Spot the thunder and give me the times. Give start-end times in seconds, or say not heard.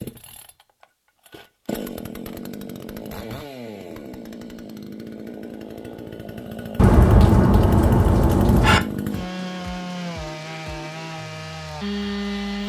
6.8-8.8.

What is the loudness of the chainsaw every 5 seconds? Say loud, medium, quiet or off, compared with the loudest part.
medium, loud, loud.